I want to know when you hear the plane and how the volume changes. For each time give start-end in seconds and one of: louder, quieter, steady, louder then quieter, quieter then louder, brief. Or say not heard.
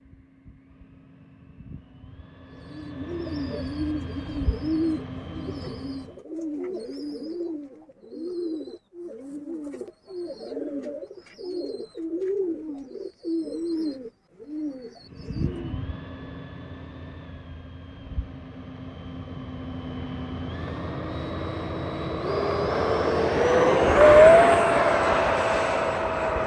0.1-6.0 louder
15.2-26.4 louder.